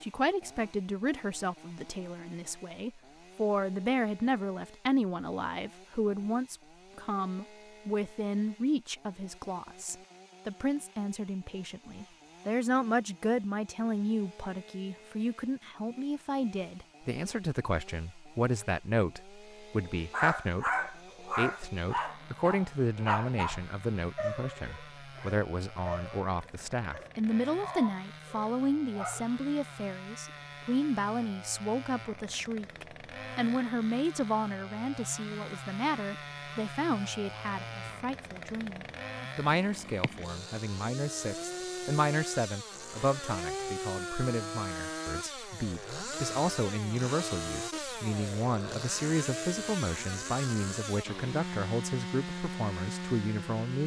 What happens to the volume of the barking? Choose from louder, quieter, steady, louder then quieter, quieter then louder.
quieter.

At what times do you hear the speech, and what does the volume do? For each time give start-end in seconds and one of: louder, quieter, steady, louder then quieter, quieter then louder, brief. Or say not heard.
0.0-53.8 steady.